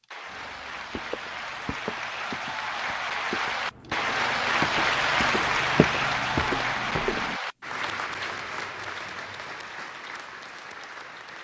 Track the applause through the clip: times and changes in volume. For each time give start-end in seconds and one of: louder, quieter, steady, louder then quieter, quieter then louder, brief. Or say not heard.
0.0-11.3 louder then quieter.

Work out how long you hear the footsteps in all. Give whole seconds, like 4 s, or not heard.
7 s.